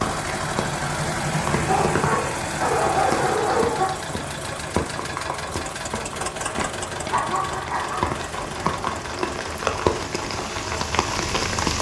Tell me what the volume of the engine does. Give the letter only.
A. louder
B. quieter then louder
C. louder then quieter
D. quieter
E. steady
D.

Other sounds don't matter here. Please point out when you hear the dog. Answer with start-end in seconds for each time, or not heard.
1.6-4.0, 7.1-8.7.